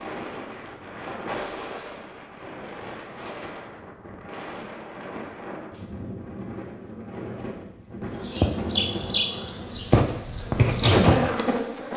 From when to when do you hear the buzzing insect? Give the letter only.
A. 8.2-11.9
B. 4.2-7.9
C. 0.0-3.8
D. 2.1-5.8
A.